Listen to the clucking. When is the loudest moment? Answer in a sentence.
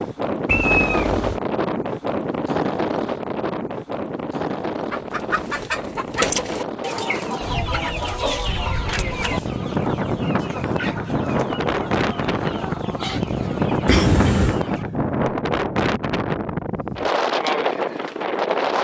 The loudest moment of the clucking is at 6 seconds.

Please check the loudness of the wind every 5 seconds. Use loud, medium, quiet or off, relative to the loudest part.
loud, medium, loud, loud.